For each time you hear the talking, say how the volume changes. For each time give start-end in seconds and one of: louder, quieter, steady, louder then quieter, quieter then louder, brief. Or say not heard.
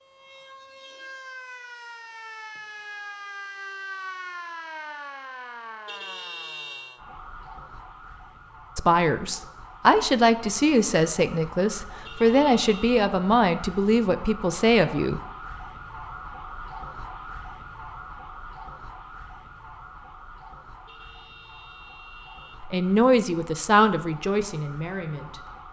8.8-15.2 steady
22.6-25.4 brief.